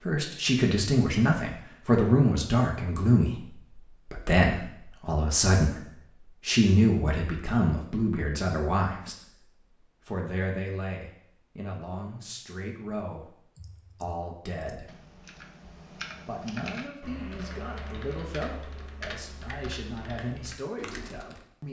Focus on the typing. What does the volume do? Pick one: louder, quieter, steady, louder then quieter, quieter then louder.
louder.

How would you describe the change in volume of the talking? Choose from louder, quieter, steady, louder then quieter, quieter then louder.
quieter.